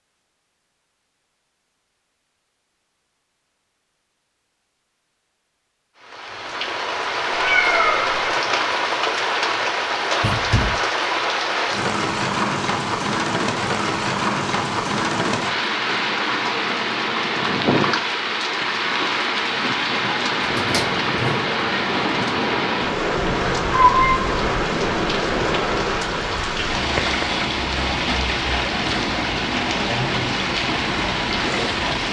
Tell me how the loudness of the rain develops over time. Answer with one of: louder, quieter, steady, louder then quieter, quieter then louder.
steady.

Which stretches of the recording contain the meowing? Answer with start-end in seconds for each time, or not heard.
7.3-8.3, 23.1-24.4.